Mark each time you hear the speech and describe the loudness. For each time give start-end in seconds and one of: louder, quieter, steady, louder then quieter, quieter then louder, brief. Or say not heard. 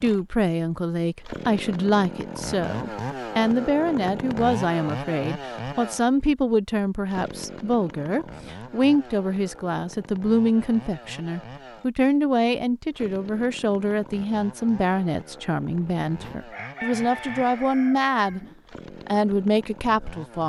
0.0-18.4 steady
19.1-20.4 brief.